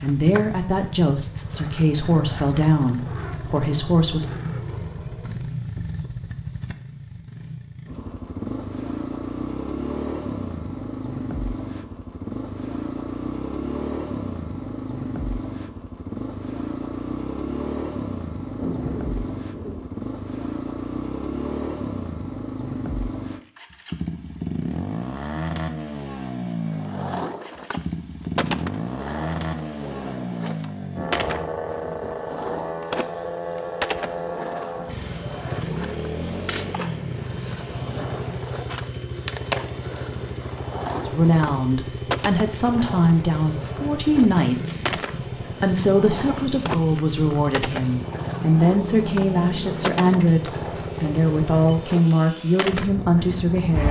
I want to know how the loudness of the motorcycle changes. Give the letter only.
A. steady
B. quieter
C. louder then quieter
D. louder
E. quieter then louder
A.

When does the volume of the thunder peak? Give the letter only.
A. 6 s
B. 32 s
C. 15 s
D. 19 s
D.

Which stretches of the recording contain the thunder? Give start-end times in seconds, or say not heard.
18.6-19.9, 30.9-32.2.